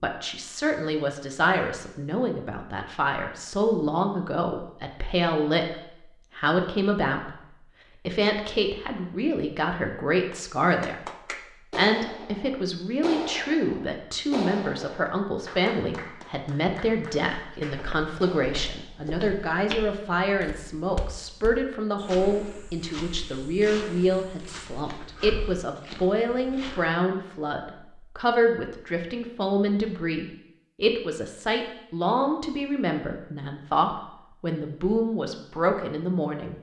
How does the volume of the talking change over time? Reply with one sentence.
The loudness of the talking stays about the same.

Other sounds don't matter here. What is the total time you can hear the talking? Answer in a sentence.
The talking can be heard for 35 seconds in total.